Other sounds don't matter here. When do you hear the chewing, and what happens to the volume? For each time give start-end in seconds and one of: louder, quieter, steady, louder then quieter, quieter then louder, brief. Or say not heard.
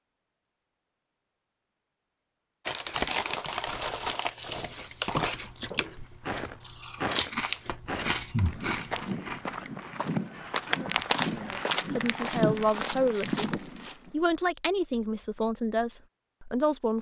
2.6-11.6 quieter.